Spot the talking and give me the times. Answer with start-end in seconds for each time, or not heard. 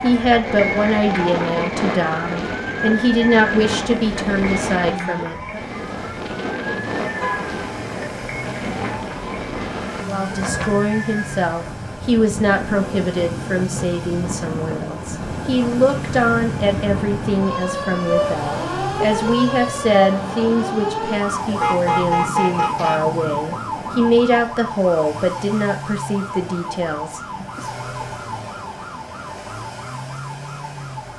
0.0-5.7, 10.1-27.7.